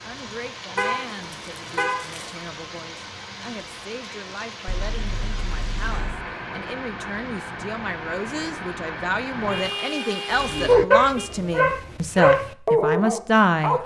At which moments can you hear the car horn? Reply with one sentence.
The car horn can be heard from 0.8 to 2.4 s, from 4.7 to 6.2 s and from 9.4 to 11.3 s.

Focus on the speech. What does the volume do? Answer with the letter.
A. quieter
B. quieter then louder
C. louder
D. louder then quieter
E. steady
C.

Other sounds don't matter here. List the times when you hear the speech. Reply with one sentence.
You can hear the speech from 0.0 to 13.8 s.